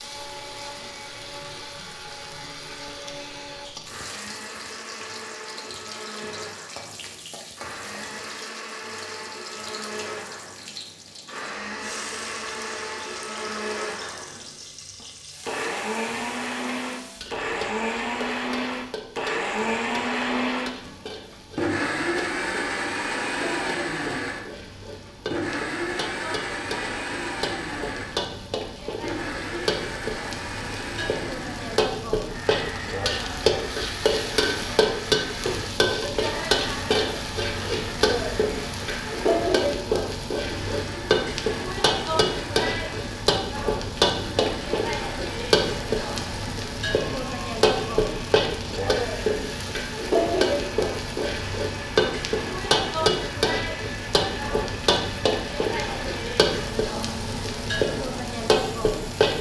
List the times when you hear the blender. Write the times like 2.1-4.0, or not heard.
0.0-59.2.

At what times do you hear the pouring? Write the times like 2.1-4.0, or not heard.
not heard.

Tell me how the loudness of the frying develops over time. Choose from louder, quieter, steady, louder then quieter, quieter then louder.
louder.